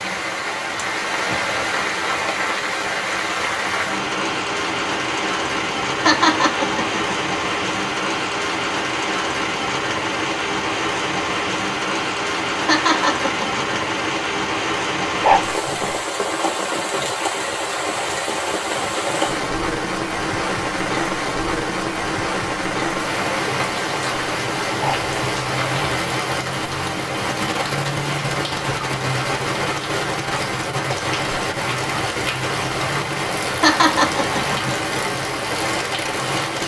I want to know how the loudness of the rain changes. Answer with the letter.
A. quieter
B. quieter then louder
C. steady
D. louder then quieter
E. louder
C.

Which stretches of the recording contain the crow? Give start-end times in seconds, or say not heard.
not heard.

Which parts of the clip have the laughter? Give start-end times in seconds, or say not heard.
6.0-7.2, 12.7-13.8, 33.6-34.7.